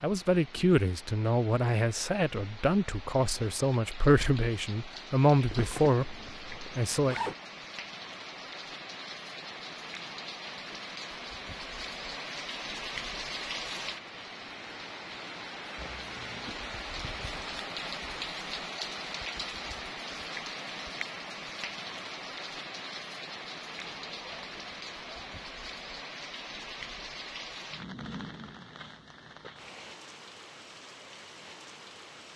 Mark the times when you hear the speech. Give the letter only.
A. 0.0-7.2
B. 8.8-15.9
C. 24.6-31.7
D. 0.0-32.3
A.